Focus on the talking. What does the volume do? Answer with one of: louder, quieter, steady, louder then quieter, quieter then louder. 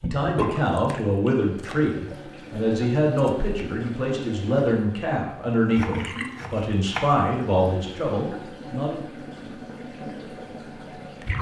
steady.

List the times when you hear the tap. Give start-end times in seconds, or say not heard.
0.0-11.3.